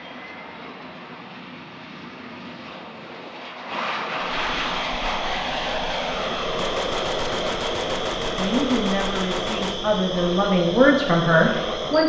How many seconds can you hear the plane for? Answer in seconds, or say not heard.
12 s.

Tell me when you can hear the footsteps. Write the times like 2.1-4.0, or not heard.
not heard.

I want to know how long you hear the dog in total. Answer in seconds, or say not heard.
not heard.